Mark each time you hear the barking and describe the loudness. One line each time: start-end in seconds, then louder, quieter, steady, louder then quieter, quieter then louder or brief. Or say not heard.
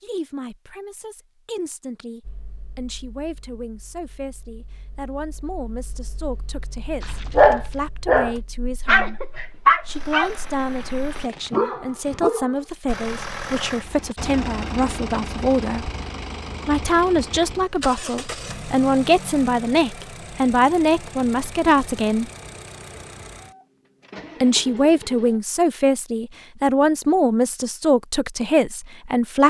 7.0-12.6 quieter then louder.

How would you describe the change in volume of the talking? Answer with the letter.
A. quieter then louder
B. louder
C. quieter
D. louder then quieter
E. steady
B.